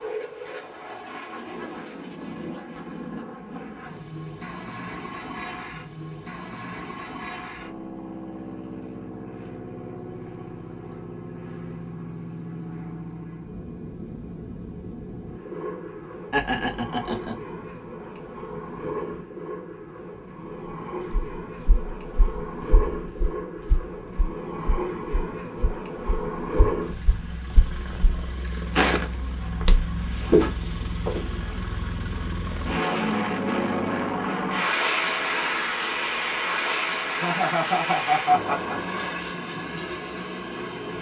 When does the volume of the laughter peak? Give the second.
38 s.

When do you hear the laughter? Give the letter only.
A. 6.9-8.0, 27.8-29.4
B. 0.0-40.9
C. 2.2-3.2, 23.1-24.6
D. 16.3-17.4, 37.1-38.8
D.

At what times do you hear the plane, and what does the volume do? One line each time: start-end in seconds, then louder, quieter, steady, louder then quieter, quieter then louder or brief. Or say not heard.
0.0-40.9 louder.